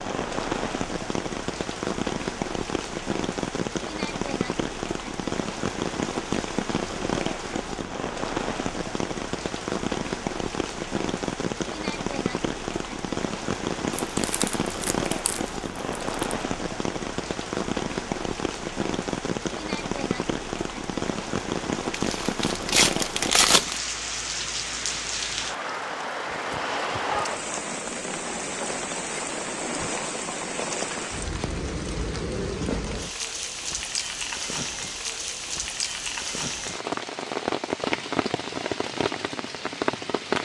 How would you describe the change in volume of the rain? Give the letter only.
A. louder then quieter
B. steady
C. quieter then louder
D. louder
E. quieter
B.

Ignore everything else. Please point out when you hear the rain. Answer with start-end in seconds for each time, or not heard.
0.0-40.4.